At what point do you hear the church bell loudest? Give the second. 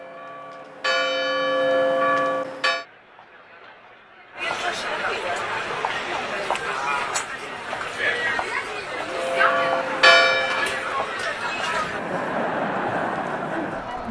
10 s.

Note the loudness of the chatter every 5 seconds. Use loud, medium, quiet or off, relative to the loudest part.
medium, loud, loud.